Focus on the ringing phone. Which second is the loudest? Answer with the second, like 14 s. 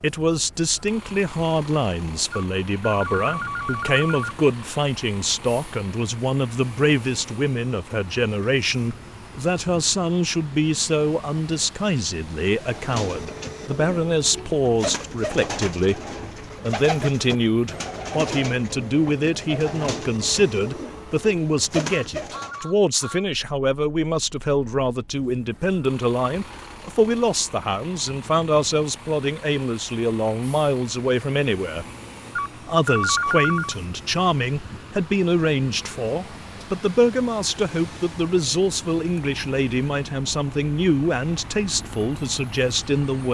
33 s.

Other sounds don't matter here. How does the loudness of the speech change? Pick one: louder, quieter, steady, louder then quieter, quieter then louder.
steady.